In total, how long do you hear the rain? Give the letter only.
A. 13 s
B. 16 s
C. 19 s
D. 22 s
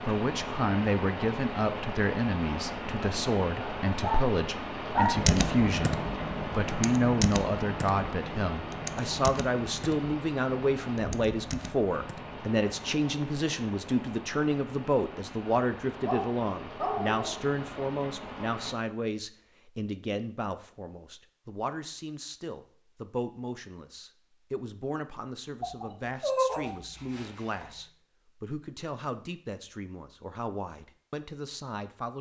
C.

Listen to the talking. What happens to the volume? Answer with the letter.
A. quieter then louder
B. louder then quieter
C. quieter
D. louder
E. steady
C.